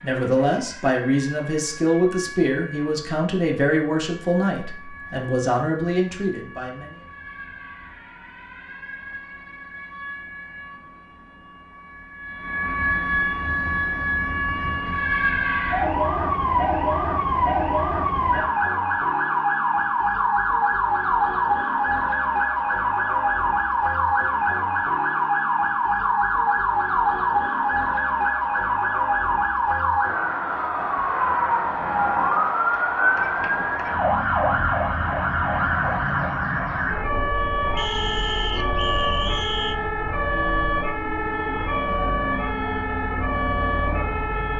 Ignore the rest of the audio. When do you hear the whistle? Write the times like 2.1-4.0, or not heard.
37.8-39.8.